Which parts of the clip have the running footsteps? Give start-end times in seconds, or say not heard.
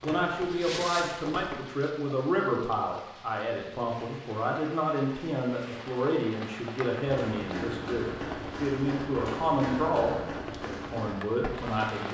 0.0-1.6, 7.0-11.8.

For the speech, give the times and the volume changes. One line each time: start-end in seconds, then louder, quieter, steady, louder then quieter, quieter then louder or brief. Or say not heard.
0.0-12.0 steady.